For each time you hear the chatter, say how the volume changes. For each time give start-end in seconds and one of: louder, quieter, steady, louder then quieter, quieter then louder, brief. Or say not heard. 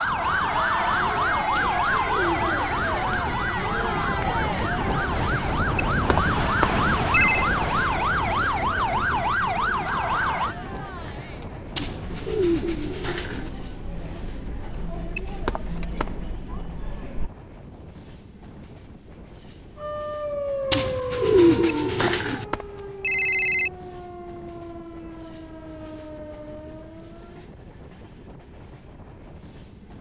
0.0-17.3 quieter.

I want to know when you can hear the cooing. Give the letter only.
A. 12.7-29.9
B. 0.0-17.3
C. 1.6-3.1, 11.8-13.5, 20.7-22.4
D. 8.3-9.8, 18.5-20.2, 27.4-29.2
C.